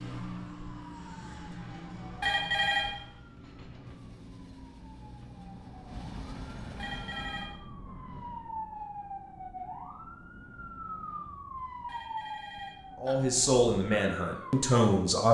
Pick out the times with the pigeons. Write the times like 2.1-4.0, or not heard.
not heard.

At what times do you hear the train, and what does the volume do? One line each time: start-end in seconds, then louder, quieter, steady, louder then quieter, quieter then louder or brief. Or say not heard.
3.1-7.5 louder.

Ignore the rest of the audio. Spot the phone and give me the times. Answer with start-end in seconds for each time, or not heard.
2.2-2.9, 6.8-7.5, 11.8-13.2.